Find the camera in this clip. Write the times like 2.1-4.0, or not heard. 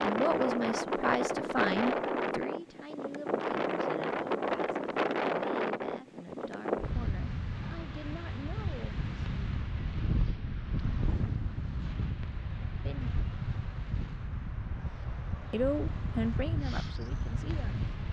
not heard.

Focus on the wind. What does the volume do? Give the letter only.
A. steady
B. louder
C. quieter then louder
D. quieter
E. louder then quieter
D.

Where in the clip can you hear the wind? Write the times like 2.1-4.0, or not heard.
0.0-18.0.